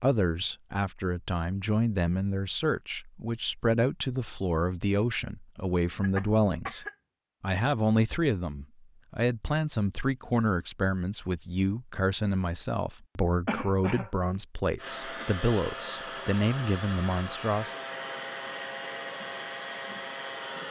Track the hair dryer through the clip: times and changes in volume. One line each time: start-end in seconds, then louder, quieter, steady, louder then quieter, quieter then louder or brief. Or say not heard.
14.8-20.6 steady.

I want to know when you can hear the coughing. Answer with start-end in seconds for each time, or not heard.
5.9-7.0, 13.4-14.1.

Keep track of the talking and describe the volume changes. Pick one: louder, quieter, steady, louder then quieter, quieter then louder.
steady.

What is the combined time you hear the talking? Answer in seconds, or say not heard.
18 s.